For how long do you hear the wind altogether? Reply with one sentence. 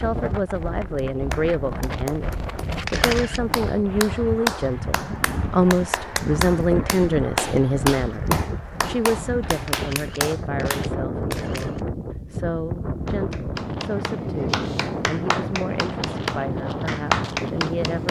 The wind can be heard for 18 seconds in total.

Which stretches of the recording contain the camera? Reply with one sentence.
You can hear the camera from 2.9 to 3.4 s and from 9.7 to 11.8 s.